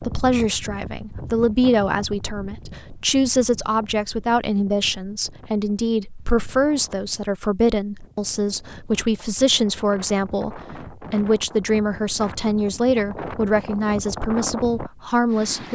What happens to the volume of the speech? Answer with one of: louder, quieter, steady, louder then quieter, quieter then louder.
steady.